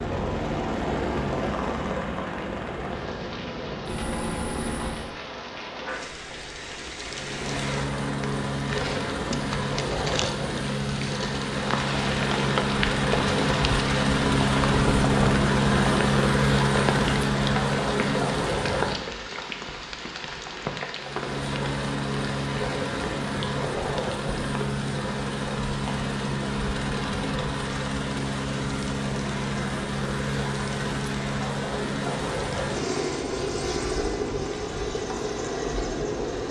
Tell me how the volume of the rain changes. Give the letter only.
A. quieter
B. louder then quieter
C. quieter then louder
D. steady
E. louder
B.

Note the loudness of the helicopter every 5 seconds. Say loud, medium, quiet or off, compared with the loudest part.
medium, medium, loud, loud, medium, medium, medium, medium.